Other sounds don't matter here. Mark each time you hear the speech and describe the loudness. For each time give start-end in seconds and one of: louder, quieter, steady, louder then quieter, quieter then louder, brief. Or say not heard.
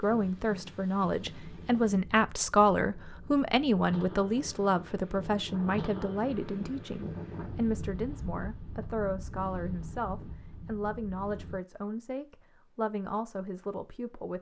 0.0-14.3 quieter.